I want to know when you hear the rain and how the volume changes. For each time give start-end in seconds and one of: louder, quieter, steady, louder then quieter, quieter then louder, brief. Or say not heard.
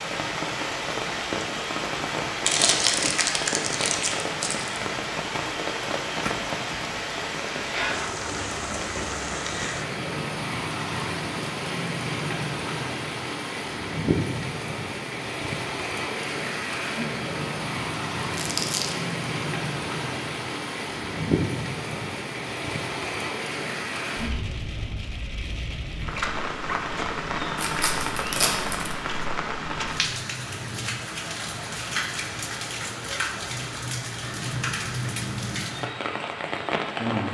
0.0-37.2 steady.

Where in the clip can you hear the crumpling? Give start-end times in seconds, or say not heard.
2.5-4.8, 18.4-18.9, 27.6-28.9.